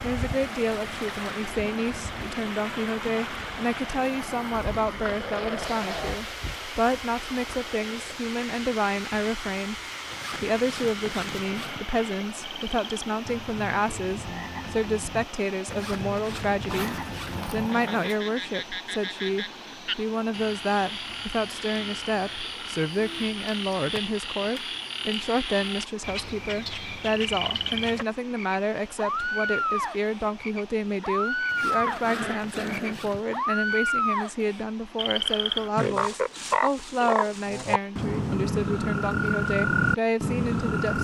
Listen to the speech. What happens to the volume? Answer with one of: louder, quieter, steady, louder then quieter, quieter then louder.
steady.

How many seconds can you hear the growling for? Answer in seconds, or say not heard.
4 s.